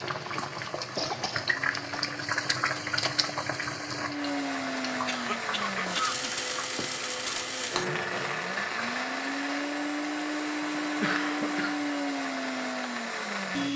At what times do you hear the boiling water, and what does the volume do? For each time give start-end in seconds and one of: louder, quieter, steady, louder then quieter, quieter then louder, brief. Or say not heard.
0.0-9.1 quieter.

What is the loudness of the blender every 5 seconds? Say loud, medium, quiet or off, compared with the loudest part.
medium, loud, loud.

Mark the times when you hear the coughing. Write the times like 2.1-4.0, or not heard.
0.9-2.0, 5.0-6.3, 10.7-11.8.